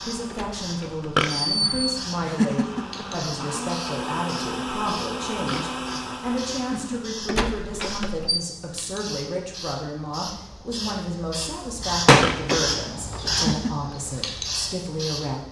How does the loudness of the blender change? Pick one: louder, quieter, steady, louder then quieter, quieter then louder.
louder.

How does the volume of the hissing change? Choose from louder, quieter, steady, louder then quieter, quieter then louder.
louder.